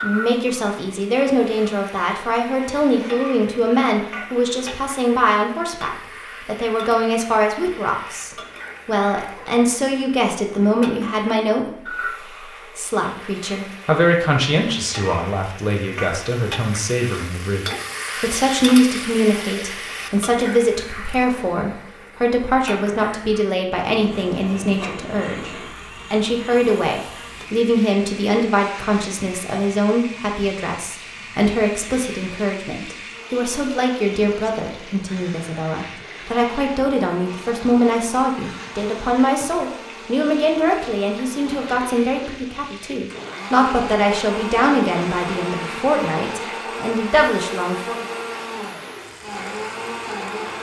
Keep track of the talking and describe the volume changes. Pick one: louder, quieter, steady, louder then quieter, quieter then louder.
steady.